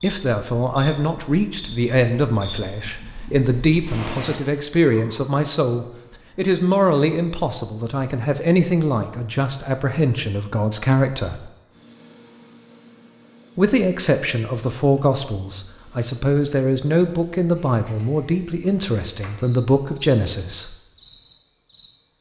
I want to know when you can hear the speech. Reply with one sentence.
The speech can be heard from 0.0 to 11.5 s and from 13.6 to 20.8 s.